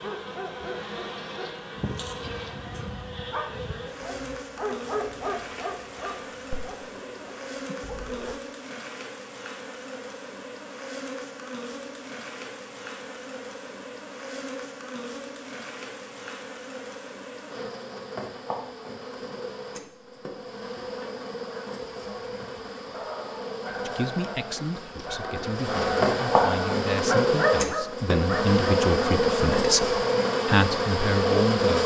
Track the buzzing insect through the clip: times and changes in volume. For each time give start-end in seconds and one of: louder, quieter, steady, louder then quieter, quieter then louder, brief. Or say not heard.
0.0-31.8 louder.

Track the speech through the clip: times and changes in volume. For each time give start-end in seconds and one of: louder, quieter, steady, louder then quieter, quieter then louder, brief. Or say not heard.
23.9-31.8 louder.